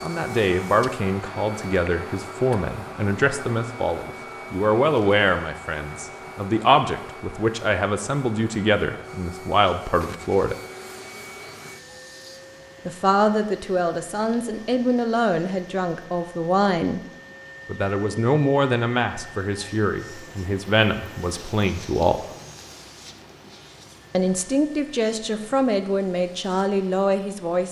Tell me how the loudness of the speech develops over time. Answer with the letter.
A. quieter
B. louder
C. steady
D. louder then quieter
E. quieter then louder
C.